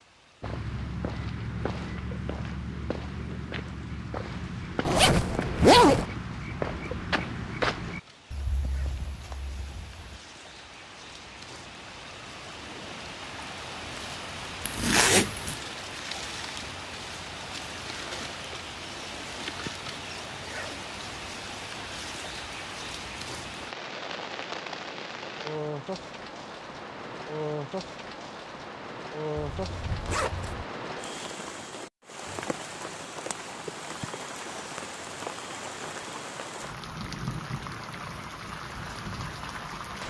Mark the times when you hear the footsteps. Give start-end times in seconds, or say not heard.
0.4-10.2.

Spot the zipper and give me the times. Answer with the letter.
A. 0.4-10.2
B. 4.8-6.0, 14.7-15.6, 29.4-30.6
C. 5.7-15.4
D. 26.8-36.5
B.